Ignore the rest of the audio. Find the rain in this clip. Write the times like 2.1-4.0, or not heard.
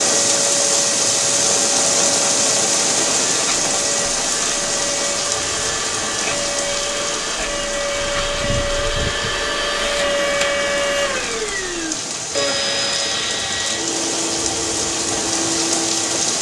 0.0-16.3.